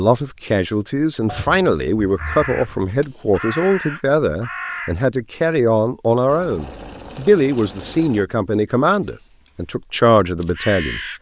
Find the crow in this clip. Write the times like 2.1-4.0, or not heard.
2.1-5.0, 8.9-11.1.